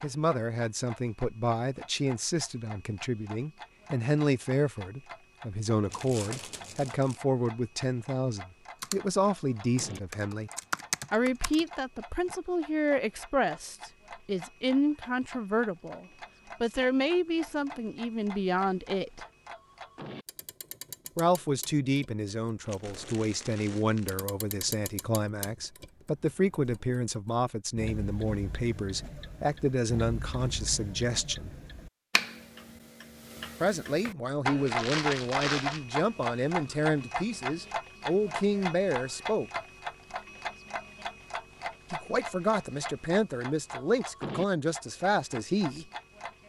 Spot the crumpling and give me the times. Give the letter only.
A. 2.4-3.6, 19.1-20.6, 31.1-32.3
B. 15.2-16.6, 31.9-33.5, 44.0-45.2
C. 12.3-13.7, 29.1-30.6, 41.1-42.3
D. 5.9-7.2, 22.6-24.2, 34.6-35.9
D.